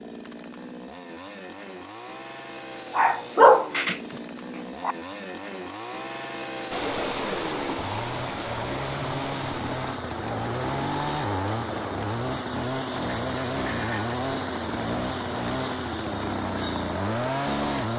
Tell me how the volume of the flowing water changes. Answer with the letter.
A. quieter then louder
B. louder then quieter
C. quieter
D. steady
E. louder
D.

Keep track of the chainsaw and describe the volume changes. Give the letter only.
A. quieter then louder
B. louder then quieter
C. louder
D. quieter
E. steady
C.